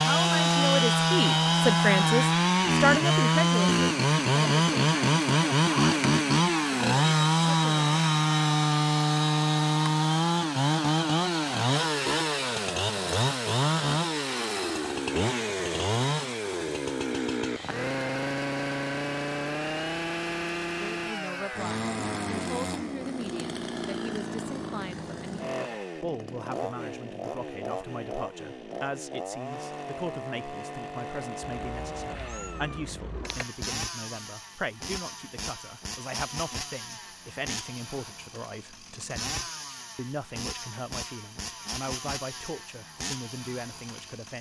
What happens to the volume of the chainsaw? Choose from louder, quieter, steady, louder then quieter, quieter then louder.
quieter.